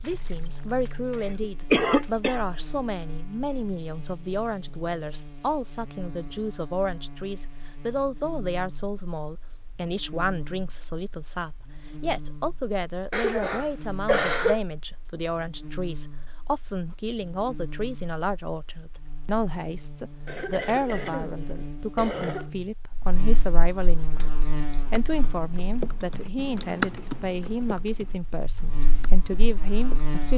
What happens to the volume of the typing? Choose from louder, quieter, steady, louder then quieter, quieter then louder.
louder then quieter.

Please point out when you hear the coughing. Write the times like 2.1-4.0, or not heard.
0.1-2.4, 13.1-14.6, 20.2-22.5.